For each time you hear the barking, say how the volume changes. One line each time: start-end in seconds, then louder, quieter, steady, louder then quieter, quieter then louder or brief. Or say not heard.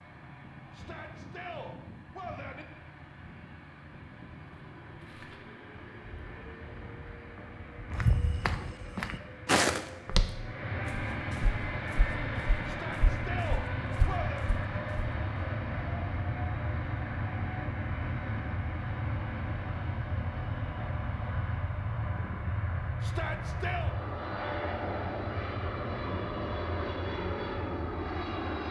not heard.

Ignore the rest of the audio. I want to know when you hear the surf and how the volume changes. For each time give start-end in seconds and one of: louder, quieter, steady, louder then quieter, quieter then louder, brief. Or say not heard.
not heard.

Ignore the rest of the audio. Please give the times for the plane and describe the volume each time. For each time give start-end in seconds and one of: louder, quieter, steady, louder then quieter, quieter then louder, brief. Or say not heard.
0.0-28.6 louder.